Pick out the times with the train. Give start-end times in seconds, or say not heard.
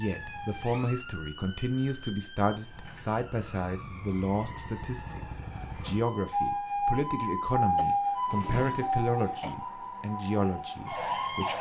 not heard.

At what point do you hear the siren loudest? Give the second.
8 s.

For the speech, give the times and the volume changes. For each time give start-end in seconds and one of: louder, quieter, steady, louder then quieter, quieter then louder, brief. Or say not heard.
0.0-11.5 steady.